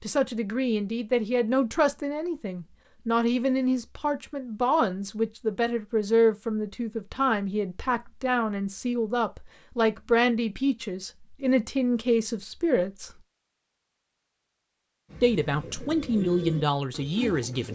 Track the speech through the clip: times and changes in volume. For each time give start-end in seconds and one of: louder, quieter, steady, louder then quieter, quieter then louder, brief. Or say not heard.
0.0-13.1 steady
15.2-17.7 brief.